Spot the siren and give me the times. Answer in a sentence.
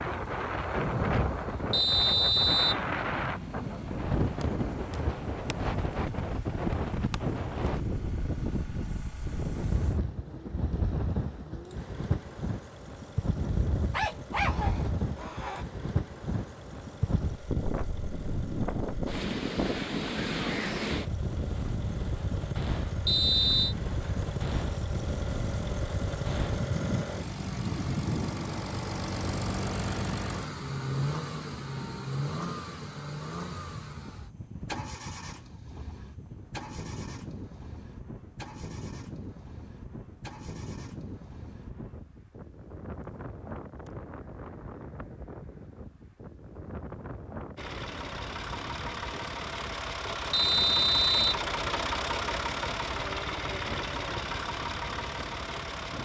You can't hear the siren here.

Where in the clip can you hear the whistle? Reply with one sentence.
You can hear the whistle from 1.7 to 2.9 s, from 23.1 to 23.8 s and from 50.3 to 51.4 s.